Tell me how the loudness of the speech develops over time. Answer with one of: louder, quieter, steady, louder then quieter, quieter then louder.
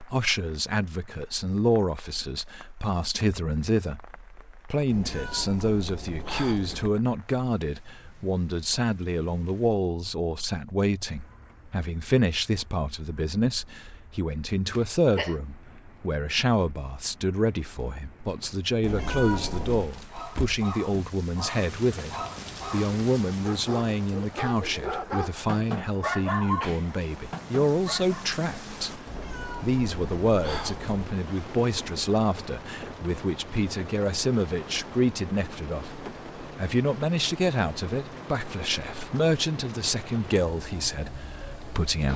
steady.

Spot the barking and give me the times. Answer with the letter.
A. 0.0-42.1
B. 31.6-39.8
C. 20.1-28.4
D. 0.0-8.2
C.